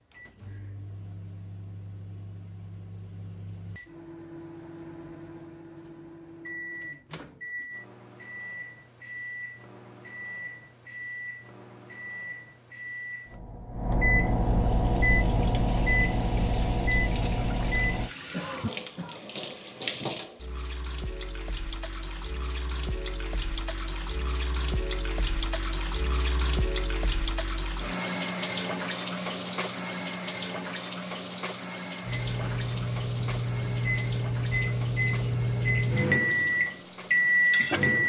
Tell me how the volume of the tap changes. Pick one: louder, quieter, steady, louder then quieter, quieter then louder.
louder then quieter.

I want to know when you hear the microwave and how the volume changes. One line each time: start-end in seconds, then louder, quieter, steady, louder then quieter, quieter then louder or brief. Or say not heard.
0.1-18.1 louder
32.0-38.0 louder.